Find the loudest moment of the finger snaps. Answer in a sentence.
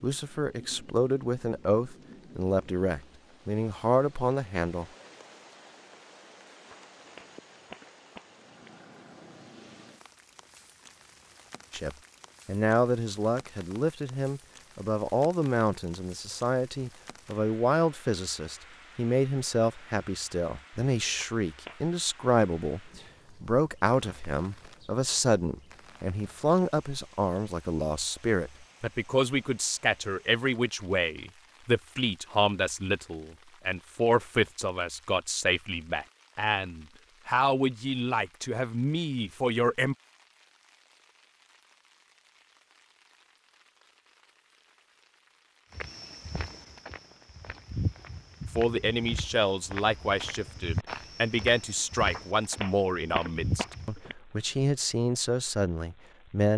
The loudest moment of the finger snaps is at 53 seconds.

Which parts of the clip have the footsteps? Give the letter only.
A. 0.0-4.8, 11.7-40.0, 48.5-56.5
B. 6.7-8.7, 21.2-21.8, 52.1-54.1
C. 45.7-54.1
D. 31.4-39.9
C.